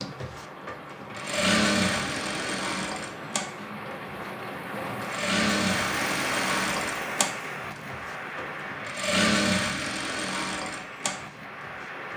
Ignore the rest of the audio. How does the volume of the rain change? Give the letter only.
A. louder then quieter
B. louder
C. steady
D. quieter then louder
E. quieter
A.